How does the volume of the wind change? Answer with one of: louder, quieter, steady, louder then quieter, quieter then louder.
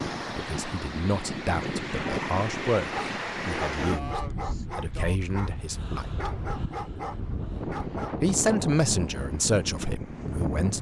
quieter then louder.